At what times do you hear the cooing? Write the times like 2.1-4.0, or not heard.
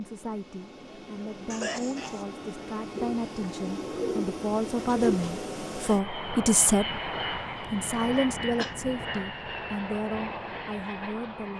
3.0-5.4.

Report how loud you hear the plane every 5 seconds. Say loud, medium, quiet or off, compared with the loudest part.
medium, loud, loud.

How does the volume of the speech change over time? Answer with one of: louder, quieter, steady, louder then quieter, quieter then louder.
louder then quieter.